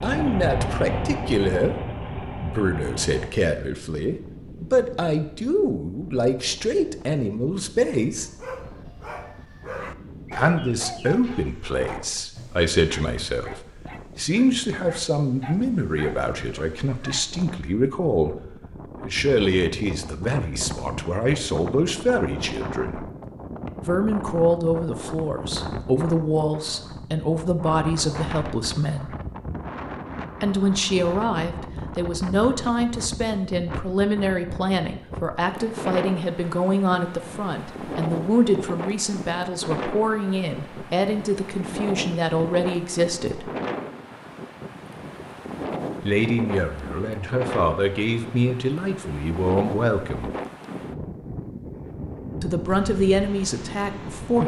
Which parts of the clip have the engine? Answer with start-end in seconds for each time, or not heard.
0.0-3.3.